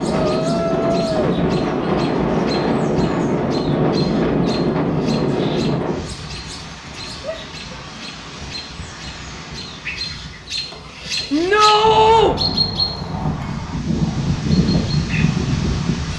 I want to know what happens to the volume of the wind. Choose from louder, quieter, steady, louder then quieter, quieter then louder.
quieter then louder.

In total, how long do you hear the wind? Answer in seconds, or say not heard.
16 s.